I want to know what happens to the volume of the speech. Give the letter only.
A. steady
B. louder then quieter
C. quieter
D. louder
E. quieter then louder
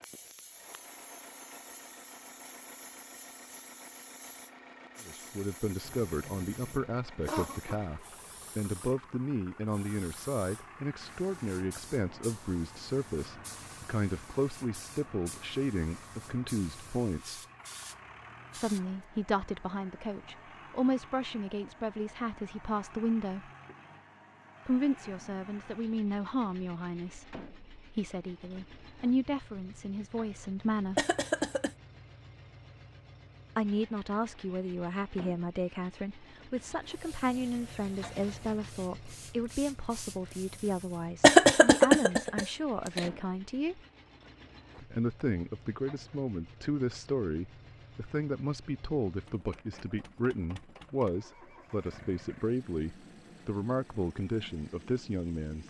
A.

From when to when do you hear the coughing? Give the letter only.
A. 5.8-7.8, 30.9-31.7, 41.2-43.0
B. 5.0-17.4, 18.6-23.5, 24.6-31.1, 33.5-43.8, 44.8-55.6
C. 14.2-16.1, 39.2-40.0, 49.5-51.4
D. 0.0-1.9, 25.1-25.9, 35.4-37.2
A.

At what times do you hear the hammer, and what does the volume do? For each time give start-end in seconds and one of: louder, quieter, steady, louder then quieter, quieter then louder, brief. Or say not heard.
not heard.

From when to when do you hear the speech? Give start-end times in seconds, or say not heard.
5.0-17.4, 18.6-23.5, 24.6-31.1, 33.5-43.8, 44.8-55.6.